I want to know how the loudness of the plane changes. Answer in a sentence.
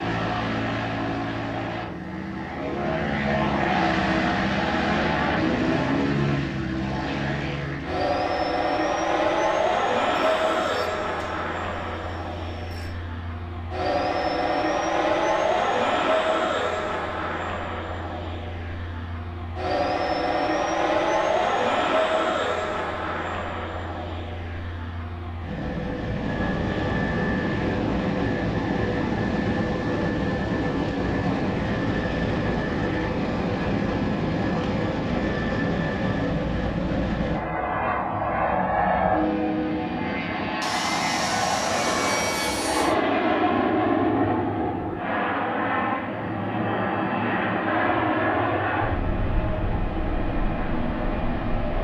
The volume of the plane stays about the same.